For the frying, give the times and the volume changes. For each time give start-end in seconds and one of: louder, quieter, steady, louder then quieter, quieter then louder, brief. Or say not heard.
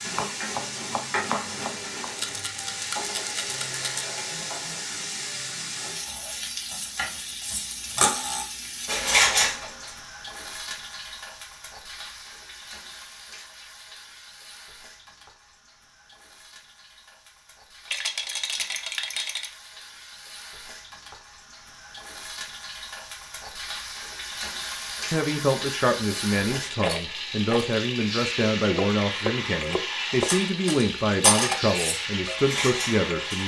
0.0-33.4 quieter then louder.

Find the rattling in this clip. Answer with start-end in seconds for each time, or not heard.
2.0-4.0, 17.9-19.6, 26.8-27.6.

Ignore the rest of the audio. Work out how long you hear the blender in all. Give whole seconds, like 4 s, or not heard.
not heard.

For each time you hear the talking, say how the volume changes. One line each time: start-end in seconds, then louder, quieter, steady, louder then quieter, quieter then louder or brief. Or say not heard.
25.1-33.4 steady.